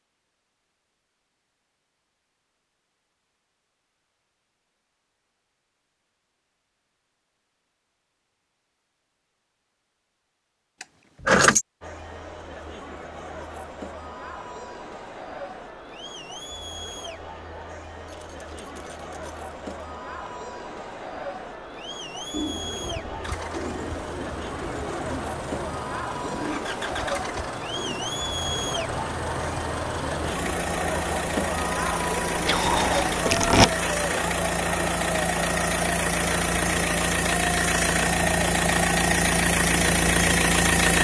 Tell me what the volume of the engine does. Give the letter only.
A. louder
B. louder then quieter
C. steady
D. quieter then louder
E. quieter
A.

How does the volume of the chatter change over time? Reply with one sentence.
The loudness of the chatter goes up.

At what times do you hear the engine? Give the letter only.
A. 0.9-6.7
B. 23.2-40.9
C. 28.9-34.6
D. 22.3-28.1
B.